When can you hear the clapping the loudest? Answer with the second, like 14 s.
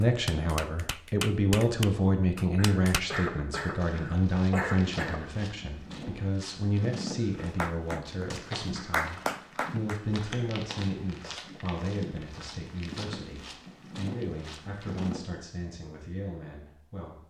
9 s.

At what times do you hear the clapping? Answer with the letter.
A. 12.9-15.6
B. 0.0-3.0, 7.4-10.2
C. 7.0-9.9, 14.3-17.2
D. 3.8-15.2
B.